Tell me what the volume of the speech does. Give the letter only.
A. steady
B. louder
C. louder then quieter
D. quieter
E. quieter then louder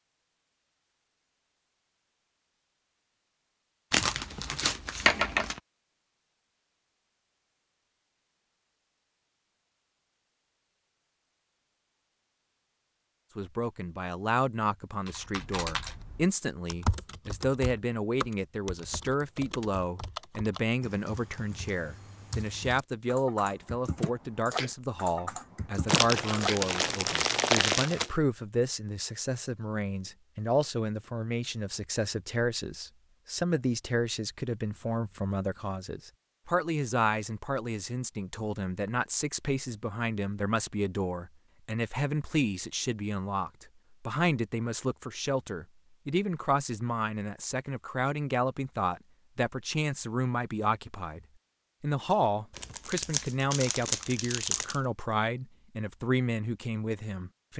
A.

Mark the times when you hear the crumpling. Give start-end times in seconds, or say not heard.
3.9-5.6, 25.9-28.1, 52.5-54.8.